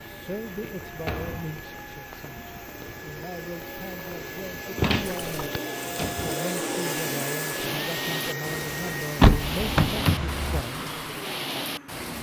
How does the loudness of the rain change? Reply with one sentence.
The volume of the rain goes up.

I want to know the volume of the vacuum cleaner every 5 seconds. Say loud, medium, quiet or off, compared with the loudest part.
medium, loud, medium.